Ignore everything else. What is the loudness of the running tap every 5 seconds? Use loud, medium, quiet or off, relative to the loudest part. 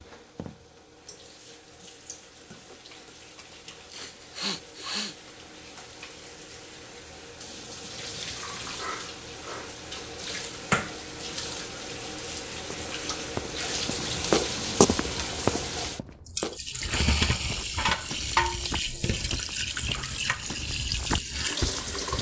quiet, medium, loud, loud, loud.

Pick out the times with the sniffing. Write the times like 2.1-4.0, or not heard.
3.9-5.2, 8.8-10.1, 16.9-17.6.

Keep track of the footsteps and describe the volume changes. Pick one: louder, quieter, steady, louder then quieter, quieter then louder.
quieter then louder.